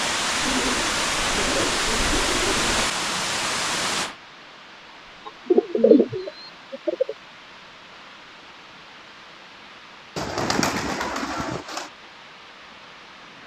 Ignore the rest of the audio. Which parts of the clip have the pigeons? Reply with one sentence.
The pigeons can be heard from 0.4 to 2.9 s, from 5.2 to 7.2 s and from 10.2 to 11.9 s.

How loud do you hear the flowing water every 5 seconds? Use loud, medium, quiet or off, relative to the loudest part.
loud, quiet, quiet.